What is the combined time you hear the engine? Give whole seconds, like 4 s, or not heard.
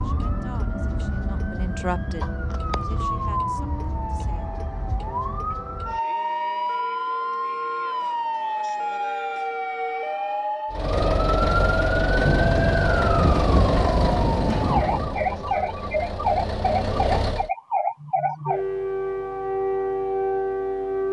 7 s.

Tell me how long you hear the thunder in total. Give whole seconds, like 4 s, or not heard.
3 s.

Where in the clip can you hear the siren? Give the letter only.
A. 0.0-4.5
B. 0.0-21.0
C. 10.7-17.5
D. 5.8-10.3
B.